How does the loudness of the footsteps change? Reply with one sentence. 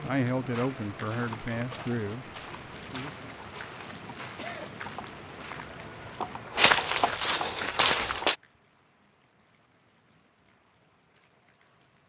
The volume of the footsteps goes up.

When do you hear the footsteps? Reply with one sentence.
You can hear the footsteps from 0.5 to 8.3 s.